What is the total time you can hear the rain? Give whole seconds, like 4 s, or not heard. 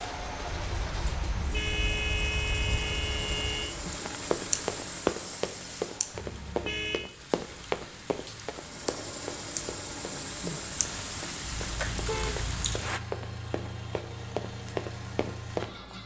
13 s.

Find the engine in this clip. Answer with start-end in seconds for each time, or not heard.
0.0-6.3, 8.4-16.0.